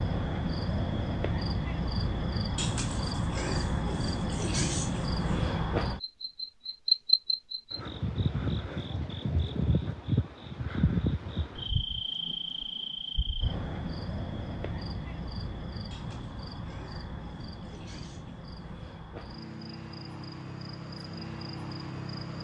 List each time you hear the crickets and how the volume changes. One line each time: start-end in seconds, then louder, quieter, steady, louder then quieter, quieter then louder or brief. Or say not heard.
0.0-22.3 quieter.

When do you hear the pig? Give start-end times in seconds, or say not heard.
2.5-5.5, 15.9-18.5.